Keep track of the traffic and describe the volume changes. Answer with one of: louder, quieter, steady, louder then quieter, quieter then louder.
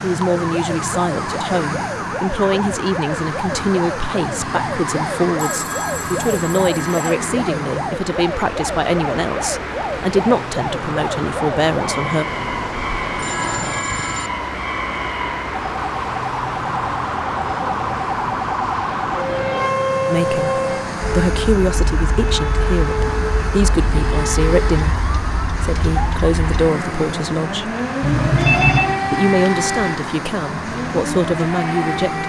steady.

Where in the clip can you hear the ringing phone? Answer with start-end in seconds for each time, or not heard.
5.3-7.2, 12.2-14.3, 28.0-28.9.